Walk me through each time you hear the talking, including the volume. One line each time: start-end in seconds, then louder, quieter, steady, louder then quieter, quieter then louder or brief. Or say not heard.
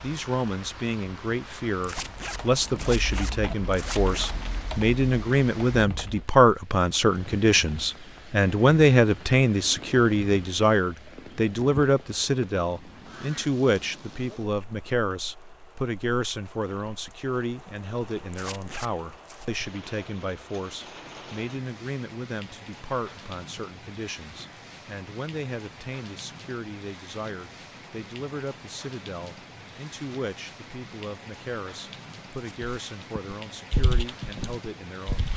0.0-35.3 quieter.